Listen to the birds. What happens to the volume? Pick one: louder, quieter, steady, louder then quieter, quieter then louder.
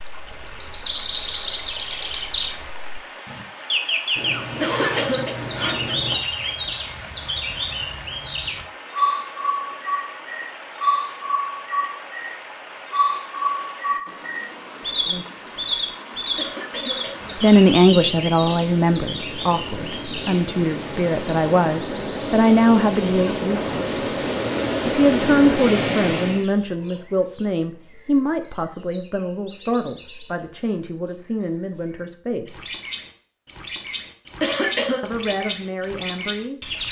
quieter then louder.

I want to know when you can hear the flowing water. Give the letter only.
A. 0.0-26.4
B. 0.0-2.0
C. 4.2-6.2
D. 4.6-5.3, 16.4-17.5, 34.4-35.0
A.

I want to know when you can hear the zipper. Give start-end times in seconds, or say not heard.
4.2-6.2.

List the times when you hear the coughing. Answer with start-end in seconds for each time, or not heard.
4.6-5.3, 16.4-17.5, 34.4-35.0.